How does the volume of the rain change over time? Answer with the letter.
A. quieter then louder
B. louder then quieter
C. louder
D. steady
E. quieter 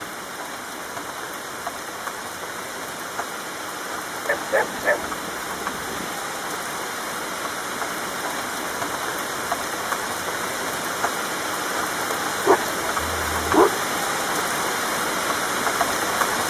C.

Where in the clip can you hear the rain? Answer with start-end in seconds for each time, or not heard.
0.0-16.4.